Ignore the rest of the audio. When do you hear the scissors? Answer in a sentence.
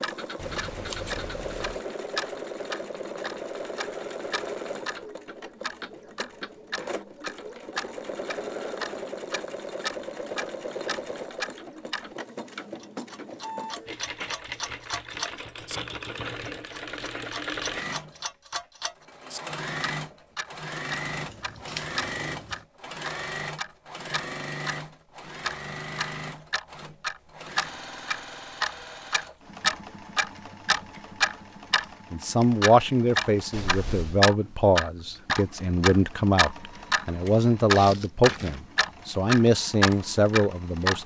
The scissors can be heard from 0.4 to 1.8 s, from 21.1 to 22.6 s and from 33.5 to 34.2 s.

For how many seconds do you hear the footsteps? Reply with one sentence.
The footsteps can't be heard in this clip.